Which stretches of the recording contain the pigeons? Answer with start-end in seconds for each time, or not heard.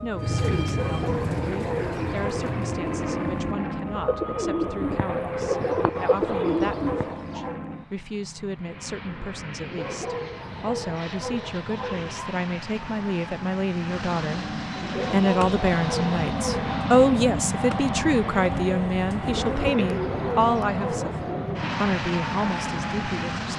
0.1-7.2, 14.8-21.8.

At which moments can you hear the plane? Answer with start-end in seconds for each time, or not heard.
0.0-23.5.